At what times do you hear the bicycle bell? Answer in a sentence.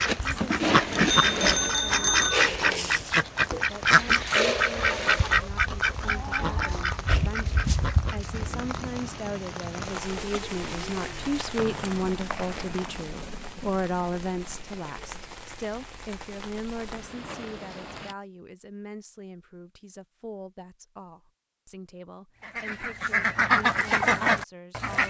The bicycle bell can be heard from 0.9 to 2.5 s.